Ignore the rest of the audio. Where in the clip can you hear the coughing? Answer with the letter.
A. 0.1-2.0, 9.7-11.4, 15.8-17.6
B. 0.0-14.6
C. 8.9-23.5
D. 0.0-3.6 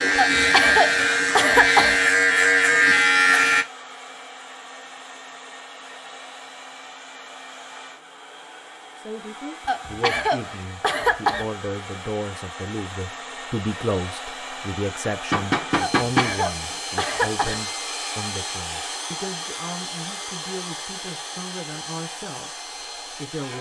A.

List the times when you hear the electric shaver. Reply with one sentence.
The electric shaver can be heard from 0.0 to 3.6 s.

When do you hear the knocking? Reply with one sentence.
You can hear the knocking from 15.3 to 16.8 s.